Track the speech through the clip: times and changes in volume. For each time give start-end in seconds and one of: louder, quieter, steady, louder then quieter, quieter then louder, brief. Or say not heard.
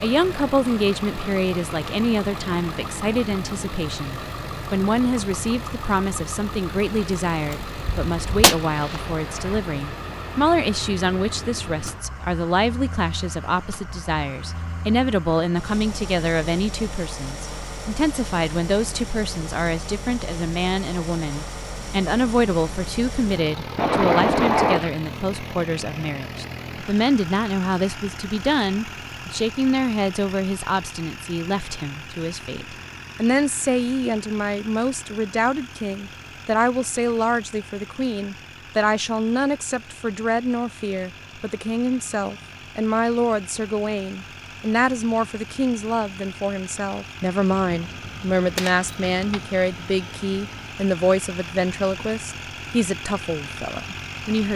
0.0-54.5 steady.